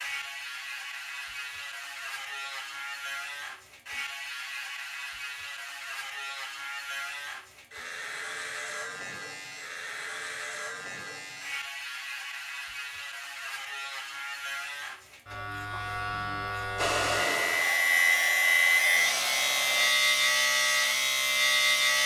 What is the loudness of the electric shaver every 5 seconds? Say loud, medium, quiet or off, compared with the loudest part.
quiet, quiet, quiet, loud, loud.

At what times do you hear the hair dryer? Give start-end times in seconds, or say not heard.
16.8-19.9.